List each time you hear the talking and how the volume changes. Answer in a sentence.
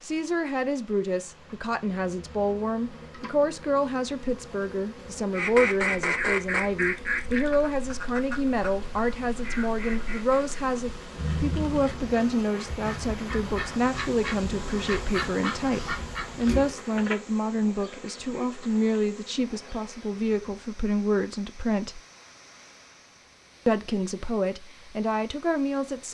You can hear the talking from 0.0 to 22.0 s, at a steady volume; and briefly from 23.6 to 26.1 s.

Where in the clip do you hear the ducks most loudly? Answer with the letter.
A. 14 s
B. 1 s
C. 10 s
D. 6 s
D.